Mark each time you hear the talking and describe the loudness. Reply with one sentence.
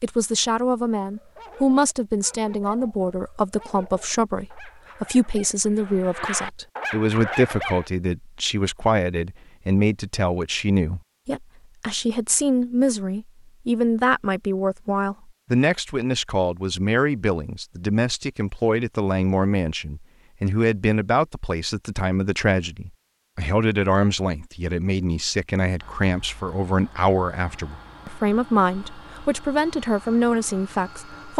The talking can be heard from 0.0 to 31.3 s, at a steady volume.